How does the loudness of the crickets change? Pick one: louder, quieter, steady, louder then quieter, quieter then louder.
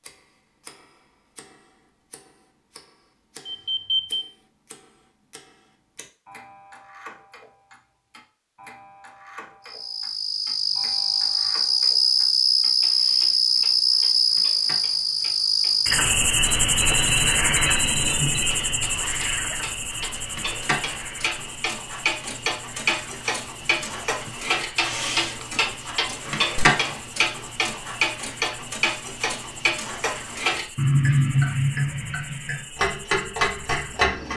quieter.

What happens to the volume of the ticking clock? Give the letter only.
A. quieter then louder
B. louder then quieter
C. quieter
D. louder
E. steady
D.